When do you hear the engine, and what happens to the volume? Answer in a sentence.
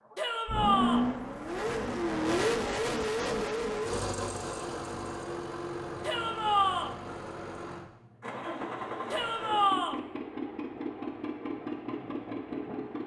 You can hear the engine from 0.1 to 13.0 s, getting quieter.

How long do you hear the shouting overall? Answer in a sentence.
The shouting can be heard for 3 seconds in total.